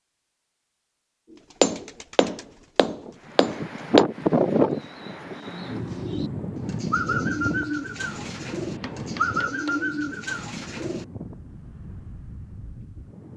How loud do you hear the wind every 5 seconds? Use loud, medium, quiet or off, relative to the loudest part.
loud, medium, quiet.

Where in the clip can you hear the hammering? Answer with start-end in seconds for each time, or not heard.
1.6-4.0, 8.2-9.8.